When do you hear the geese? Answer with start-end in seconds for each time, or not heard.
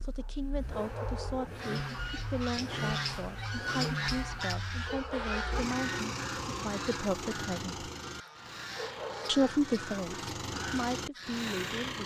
1.6-11.6.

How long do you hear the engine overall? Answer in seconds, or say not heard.
12 s.